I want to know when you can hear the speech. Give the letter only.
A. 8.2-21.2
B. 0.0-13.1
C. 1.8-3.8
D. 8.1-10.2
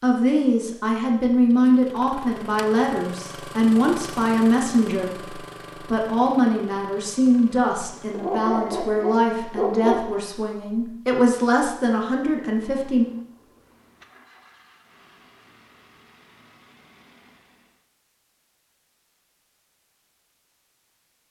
B.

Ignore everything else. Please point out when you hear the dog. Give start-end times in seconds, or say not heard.
8.1-10.2.